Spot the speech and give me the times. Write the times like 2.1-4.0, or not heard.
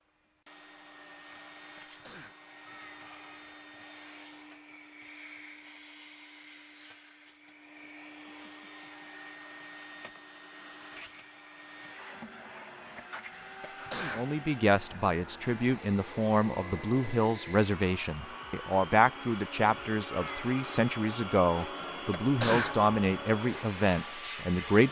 14.2-24.8.